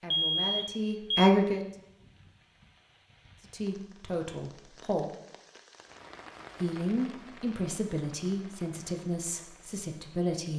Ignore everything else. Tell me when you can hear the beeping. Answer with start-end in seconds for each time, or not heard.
0.1-1.3.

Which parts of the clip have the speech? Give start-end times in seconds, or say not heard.
0.0-1.6, 3.5-5.0, 6.6-10.5.